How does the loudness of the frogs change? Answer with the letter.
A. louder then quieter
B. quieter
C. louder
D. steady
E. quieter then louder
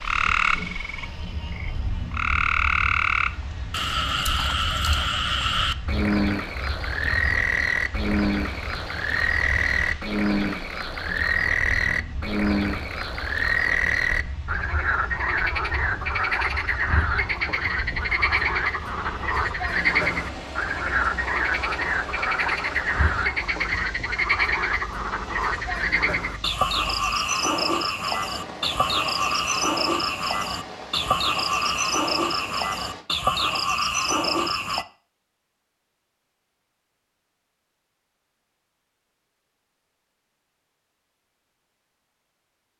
D.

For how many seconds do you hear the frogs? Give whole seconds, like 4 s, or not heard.
35 s.